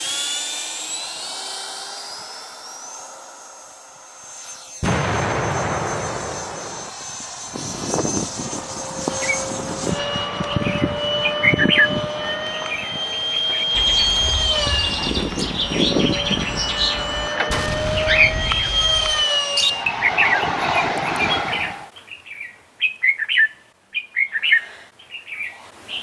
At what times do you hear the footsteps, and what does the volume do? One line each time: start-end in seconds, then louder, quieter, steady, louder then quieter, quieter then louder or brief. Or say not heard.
not heard.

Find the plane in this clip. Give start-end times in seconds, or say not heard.
0.0-21.9.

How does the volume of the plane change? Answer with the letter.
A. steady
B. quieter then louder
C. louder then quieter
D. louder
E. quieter
D.